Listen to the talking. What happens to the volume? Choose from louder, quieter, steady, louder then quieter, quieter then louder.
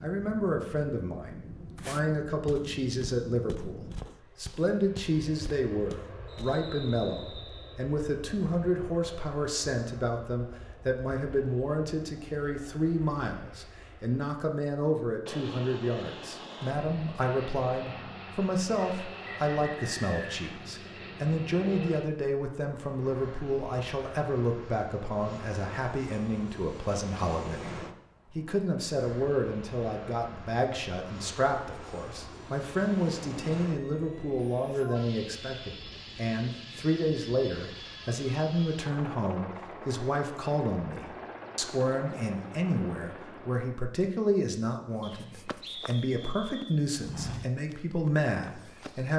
steady.